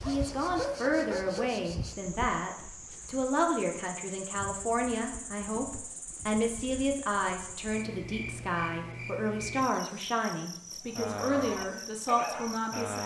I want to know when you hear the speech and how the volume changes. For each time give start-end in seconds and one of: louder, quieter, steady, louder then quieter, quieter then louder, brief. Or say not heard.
0.0-13.0 steady.